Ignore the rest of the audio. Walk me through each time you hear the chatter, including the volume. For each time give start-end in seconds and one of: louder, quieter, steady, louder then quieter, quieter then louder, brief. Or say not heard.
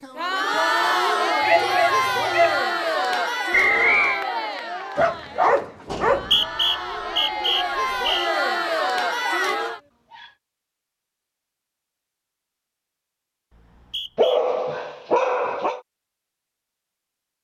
0.0-9.8 quieter then louder.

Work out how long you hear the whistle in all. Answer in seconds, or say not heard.
4 s.